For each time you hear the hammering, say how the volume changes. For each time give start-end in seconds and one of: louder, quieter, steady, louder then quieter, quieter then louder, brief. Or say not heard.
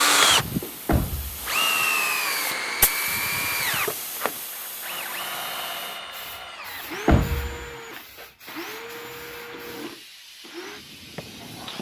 not heard.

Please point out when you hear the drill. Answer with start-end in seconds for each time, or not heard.
0.0-11.7.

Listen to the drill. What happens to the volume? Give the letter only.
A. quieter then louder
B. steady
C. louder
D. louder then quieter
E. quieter
E.